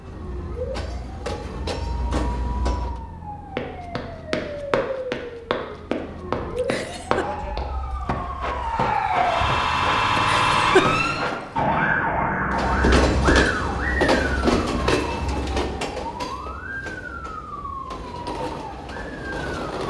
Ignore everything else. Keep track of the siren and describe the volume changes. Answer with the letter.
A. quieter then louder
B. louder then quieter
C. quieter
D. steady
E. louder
B.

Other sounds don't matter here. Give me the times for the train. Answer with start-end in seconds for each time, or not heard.
0.0-3.0, 12.5-19.8.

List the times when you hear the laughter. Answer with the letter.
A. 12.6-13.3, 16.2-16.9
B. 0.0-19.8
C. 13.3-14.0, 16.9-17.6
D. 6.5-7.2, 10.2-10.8
D.